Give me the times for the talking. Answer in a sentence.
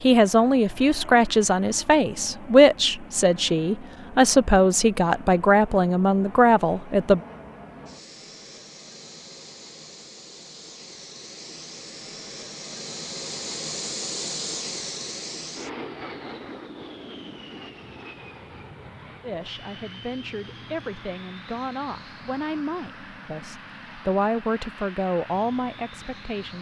You can hear the talking from 0.0 to 7.2 s and from 19.2 to 26.5 s.